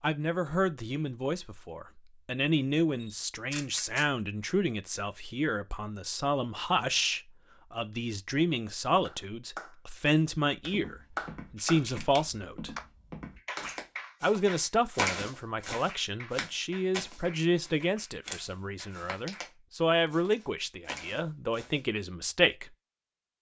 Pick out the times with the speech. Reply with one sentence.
You can hear the speech from 0.0 to 12.8 s and from 14.2 to 22.7 s.